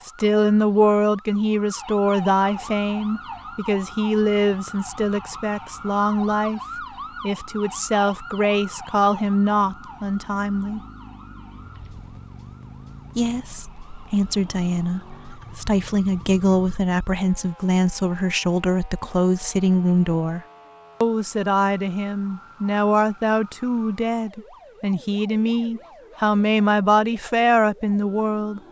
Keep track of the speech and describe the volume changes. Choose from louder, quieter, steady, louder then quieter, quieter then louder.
steady.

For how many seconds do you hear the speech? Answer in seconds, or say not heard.
26 s.